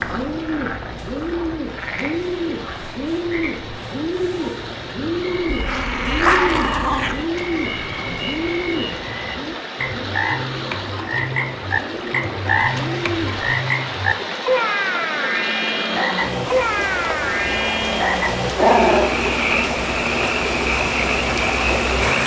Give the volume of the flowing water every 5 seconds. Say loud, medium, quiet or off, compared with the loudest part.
quiet, medium, medium, loud, loud.